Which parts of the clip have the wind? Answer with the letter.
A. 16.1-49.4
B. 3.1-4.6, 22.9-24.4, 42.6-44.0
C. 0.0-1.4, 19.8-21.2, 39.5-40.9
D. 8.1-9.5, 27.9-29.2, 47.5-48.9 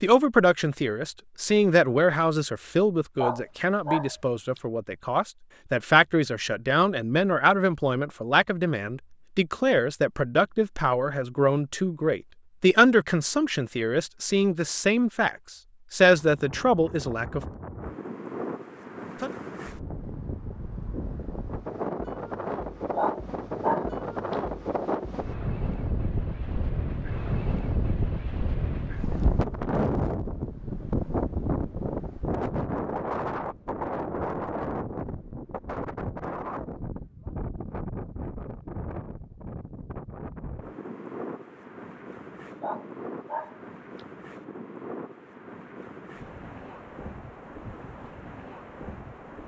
A.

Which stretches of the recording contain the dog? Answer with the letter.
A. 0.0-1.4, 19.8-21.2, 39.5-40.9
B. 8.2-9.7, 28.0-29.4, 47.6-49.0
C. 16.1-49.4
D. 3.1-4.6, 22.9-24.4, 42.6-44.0
D.